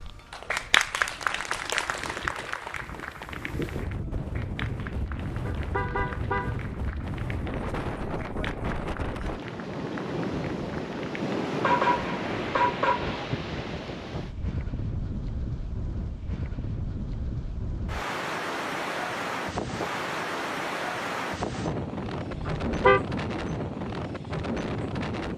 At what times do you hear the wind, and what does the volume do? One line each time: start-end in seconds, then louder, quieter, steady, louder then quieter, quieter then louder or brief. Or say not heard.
0.0-25.3 louder.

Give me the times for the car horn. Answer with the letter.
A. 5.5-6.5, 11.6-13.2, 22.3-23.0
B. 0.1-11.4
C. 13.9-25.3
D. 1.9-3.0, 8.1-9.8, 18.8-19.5
A.